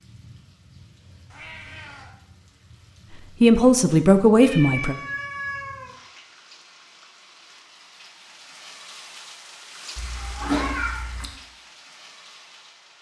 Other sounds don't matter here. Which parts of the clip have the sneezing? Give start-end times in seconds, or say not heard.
not heard.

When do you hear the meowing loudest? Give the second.
11 s.